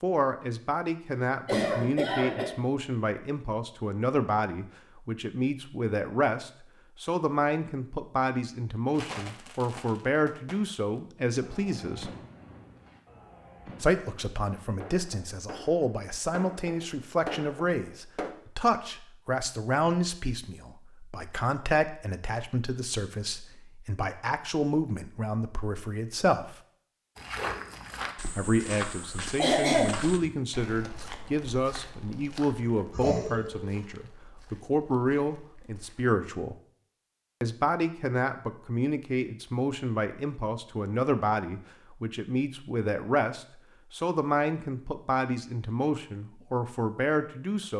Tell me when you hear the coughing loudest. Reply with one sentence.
The loudest moment of the coughing is at 30 seconds.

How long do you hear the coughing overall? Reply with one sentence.
You can hear the coughing for 3 seconds altogether.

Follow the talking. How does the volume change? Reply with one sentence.
The loudness of the talking stays about the same.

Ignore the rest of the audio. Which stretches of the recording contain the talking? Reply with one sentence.
You can hear the talking from 0.0 to 12.1 s, from 13.8 to 26.6 s, from 28.4 to 36.5 s and from 37.4 to 47.7 s.